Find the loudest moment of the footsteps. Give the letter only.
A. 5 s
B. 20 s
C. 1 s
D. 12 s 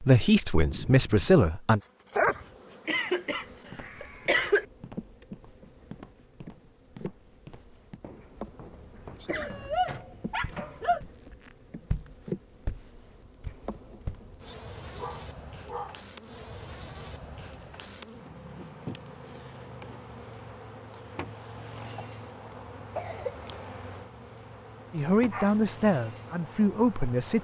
D.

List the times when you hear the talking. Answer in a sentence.
The talking can be heard from 0.0 to 1.8 s and from 24.9 to 27.3 s.